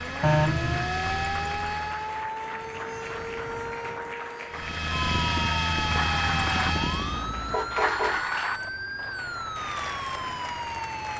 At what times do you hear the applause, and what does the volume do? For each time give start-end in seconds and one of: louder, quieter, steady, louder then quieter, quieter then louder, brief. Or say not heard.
0.0-11.1 louder then quieter.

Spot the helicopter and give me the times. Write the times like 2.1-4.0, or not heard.
0.0-2.3, 4.5-7.3.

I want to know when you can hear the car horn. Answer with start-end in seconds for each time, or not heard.
0.2-0.9, 7.0-8.2.